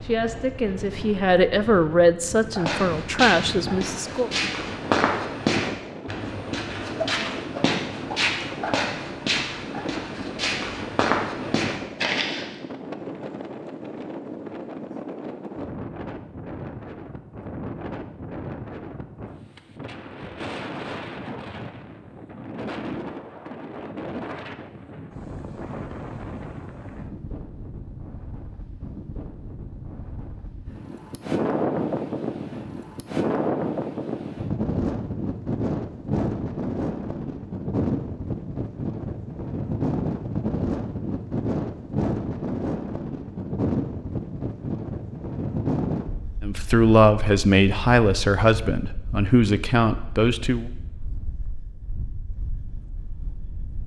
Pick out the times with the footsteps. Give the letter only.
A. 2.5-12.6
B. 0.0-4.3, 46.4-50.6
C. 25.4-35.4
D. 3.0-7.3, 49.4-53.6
A.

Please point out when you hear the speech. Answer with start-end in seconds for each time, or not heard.
0.0-4.3, 46.4-50.6.